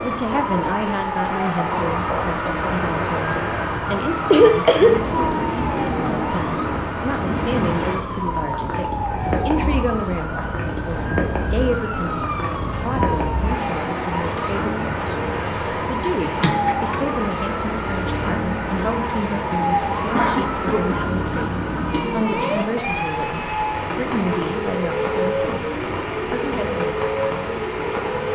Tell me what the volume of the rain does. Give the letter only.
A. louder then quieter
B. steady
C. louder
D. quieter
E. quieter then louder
B.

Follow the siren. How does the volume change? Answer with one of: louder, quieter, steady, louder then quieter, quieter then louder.
steady.